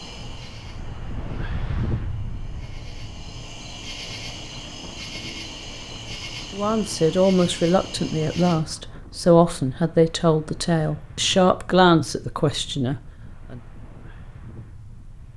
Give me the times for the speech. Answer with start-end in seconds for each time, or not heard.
6.5-13.6.